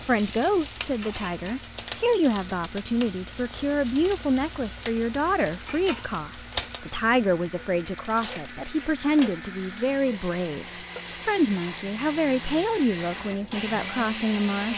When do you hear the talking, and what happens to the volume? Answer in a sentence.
You can hear the talking from 0.1 to 14.7 s, at a steady volume.